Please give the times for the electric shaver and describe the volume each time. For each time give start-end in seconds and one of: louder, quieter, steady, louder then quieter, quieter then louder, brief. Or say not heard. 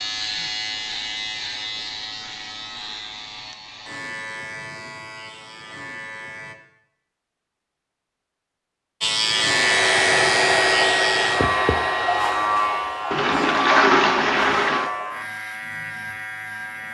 0.0-6.5 quieter
9.0-16.8 quieter.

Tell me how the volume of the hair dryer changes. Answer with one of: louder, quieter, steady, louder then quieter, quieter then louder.
quieter.